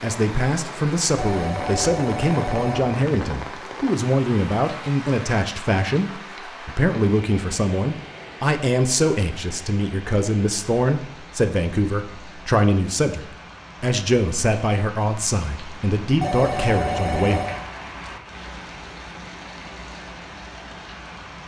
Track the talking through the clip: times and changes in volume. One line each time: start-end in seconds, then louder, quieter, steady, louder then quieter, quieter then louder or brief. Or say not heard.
0.0-17.4 steady.